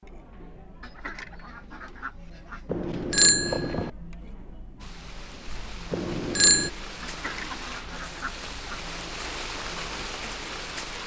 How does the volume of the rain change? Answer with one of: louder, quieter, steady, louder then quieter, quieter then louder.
louder.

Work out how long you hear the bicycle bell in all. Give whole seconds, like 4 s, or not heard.
2 s.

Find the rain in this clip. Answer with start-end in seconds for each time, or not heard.
4.8-11.0.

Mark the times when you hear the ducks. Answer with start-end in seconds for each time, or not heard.
0.8-2.6, 7.0-8.8.